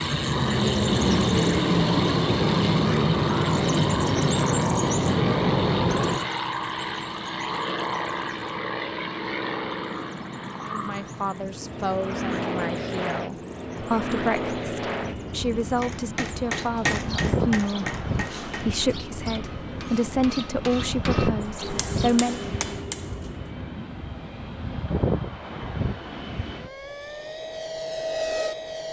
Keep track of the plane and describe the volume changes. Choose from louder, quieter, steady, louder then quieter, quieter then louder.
steady.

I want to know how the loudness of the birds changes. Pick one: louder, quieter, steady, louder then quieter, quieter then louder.
quieter.